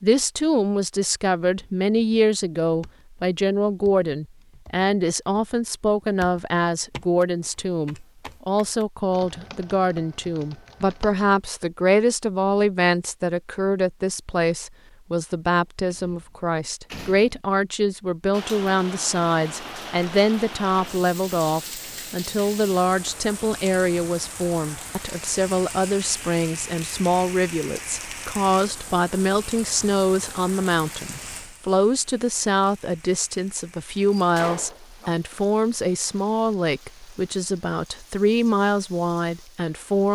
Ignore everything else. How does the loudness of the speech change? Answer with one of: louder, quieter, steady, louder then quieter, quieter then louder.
steady.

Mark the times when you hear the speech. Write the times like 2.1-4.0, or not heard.
0.0-40.1.